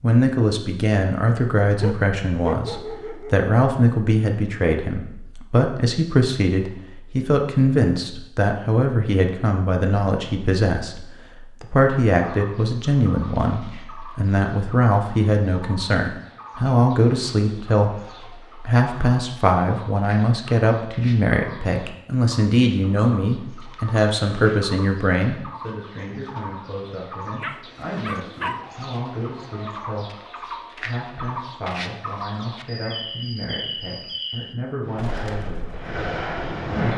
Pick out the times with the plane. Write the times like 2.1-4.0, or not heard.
34.8-36.9.